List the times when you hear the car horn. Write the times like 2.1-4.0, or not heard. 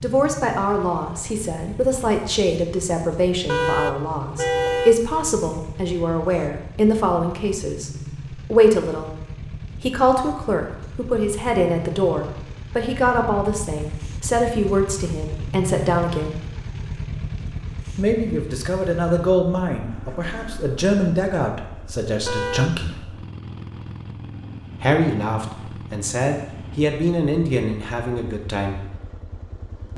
3.5-5.0, 22.2-22.9.